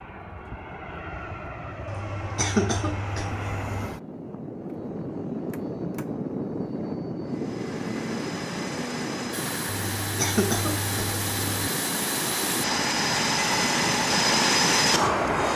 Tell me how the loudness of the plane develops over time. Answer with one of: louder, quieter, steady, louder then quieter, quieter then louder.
louder.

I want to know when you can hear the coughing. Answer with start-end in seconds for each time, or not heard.
1.9-3.8, 9.9-11.6.